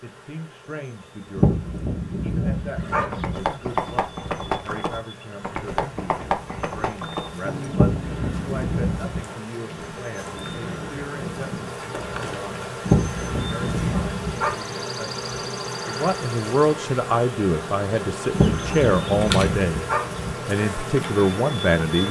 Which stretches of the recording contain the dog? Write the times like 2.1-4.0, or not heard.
1.4-3.4, 7.7-9.2, 12.8-14.6, 18.3-20.3.